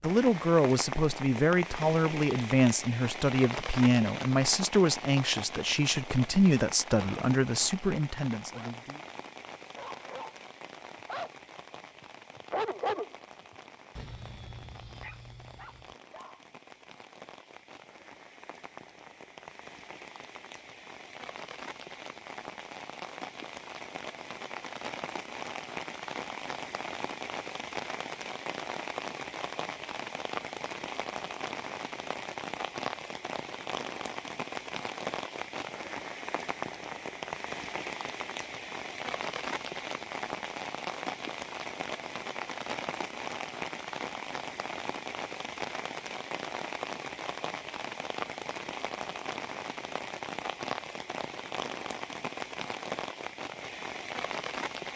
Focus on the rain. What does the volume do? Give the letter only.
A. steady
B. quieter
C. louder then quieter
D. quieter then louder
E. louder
D.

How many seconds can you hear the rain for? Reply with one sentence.
The rain can be heard for 55 seconds in total.